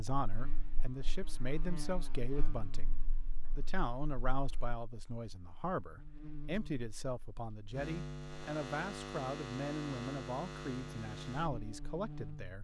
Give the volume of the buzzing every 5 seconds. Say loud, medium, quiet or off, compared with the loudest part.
medium, loud, loud.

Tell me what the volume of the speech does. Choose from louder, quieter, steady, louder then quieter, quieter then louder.
steady.